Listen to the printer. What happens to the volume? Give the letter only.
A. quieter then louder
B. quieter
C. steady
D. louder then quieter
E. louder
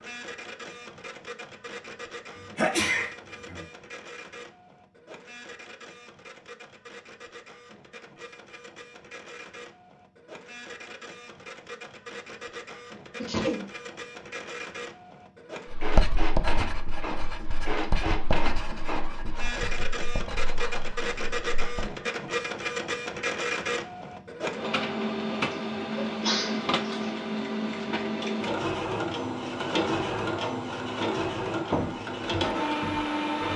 E.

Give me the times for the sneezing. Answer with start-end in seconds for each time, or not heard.
2.5-3.6, 13.2-13.7, 25.5-27.1.